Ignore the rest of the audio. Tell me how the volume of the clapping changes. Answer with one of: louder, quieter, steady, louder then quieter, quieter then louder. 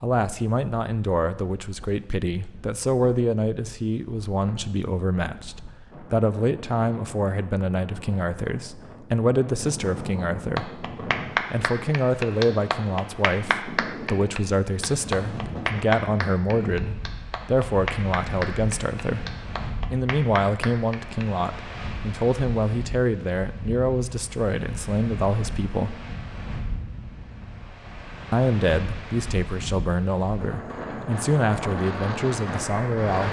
quieter.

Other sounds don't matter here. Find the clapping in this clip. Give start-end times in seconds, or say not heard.
10.6-21.2.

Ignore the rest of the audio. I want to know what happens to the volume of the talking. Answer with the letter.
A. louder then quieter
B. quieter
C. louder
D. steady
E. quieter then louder
D.